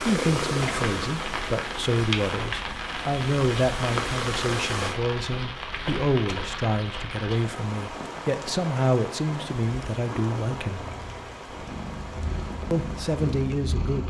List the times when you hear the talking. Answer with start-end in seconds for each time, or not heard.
0.0-10.8, 12.7-14.0.